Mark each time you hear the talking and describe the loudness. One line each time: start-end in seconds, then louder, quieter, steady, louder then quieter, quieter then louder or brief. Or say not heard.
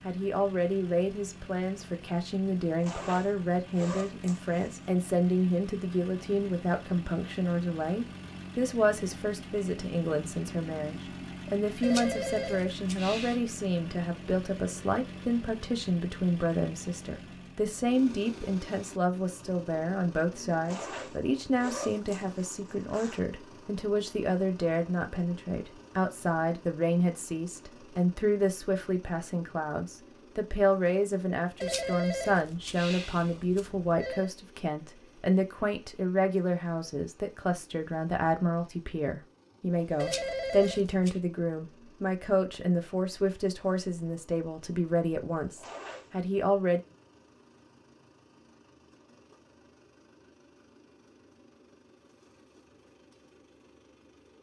0.1-46.8 steady.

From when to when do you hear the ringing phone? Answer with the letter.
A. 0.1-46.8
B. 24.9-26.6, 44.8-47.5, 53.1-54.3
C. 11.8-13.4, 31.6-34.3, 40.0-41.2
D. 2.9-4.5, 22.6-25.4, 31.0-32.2
C.